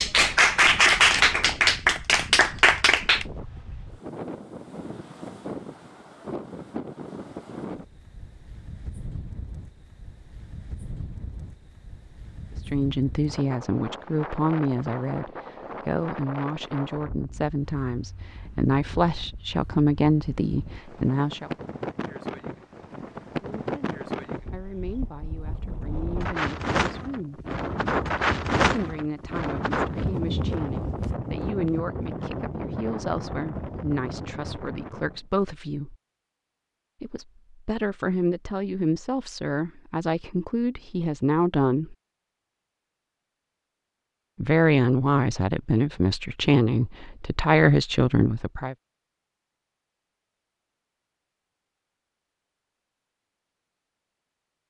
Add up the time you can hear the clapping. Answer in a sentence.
The clapping can be heard for 3 seconds in total.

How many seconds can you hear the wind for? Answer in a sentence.
The wind can be heard for 35 seconds in total.